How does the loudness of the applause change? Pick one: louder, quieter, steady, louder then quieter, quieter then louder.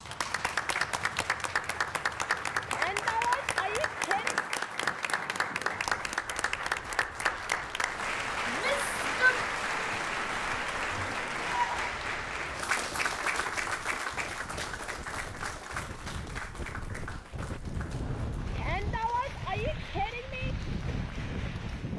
quieter.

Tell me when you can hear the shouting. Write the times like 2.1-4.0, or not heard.
2.6-4.3, 8.4-9.4, 18.6-20.6.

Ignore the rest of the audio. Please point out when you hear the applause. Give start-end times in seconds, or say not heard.
0.0-21.9.